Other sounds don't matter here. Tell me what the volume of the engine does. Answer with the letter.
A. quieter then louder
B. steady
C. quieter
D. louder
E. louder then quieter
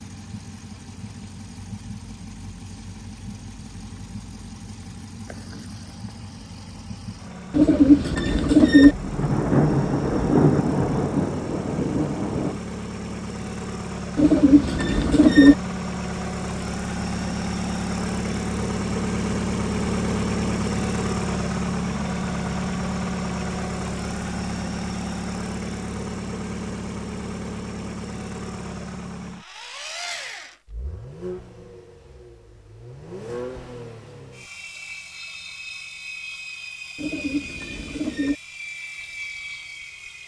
E.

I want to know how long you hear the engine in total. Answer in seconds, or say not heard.
40 s.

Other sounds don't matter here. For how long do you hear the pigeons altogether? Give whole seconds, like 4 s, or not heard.
4 s.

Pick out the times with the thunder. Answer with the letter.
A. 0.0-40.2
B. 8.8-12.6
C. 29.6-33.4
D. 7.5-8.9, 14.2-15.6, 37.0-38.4
B.